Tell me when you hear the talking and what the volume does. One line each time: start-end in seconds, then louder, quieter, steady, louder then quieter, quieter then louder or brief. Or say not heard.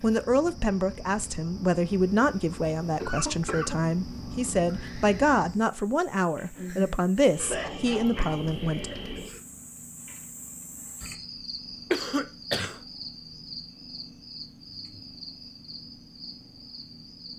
0.0-8.9 steady.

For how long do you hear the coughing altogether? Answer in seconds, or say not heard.
4 s.